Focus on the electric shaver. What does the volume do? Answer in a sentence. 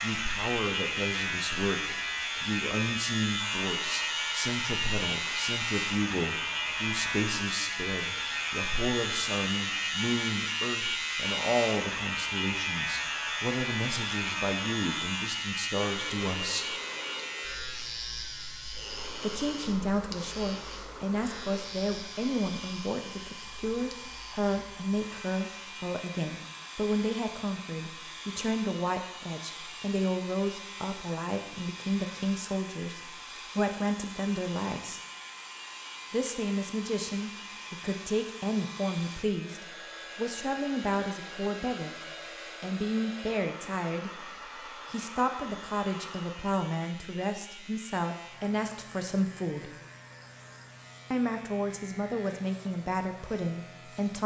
The loudness of the electric shaver goes down.